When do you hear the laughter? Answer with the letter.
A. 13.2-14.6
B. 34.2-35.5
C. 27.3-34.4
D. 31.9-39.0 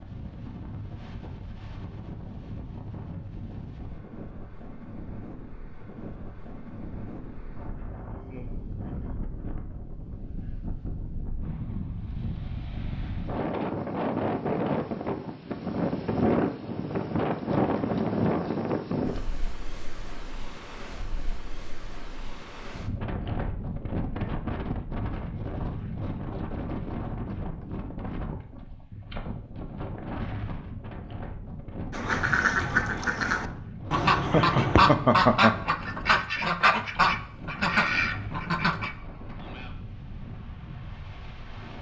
B.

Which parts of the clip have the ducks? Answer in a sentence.
You can hear the ducks from 31.9 to 39.0 s.